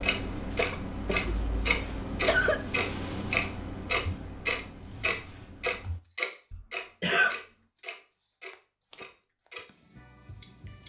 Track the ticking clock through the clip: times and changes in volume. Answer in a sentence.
The ticking clock can be heard from 0.0 to 9.7 s, getting quieter; and briefly from 10.2 to 10.8 s.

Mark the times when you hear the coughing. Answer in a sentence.
You can hear the coughing from 0.6 to 2.6 s and from 6.5 to 7.3 s.